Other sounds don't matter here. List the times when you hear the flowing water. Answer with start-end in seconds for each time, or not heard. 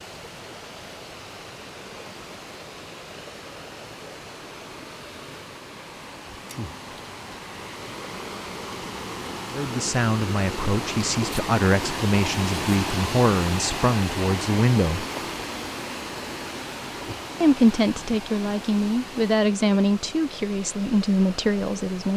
0.0-22.1.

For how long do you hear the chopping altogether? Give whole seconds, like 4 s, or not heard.
not heard.